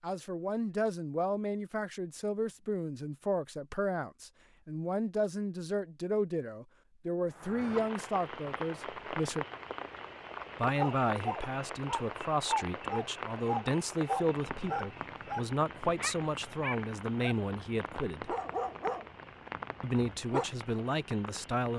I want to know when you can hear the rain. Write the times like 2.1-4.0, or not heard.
7.3-21.7.